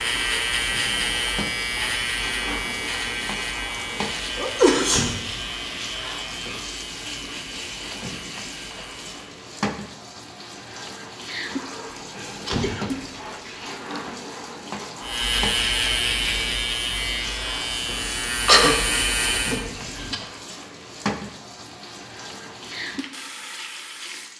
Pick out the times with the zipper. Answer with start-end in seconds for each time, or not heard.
not heard.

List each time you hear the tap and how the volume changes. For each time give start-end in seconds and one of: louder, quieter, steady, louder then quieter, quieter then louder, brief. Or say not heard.
0.0-24.3 steady.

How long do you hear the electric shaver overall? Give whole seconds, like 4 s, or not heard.
14 s.